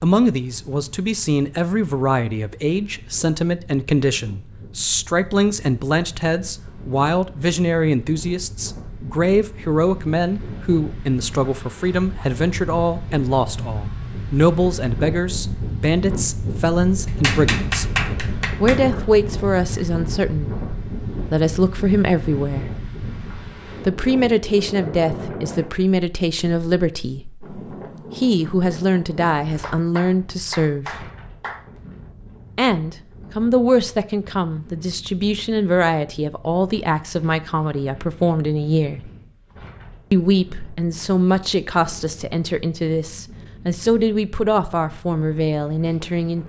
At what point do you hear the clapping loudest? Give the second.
18 s.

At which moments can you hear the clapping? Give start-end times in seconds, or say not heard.
17.1-18.8, 29.6-31.6.